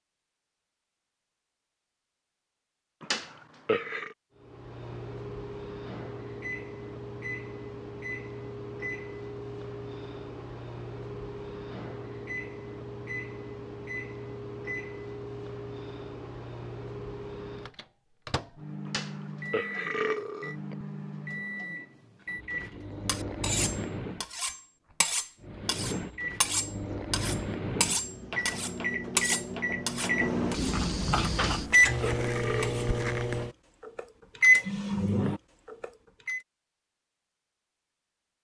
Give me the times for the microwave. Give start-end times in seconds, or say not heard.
4.3-24.4, 25.4-36.4.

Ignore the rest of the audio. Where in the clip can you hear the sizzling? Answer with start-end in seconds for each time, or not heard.
not heard.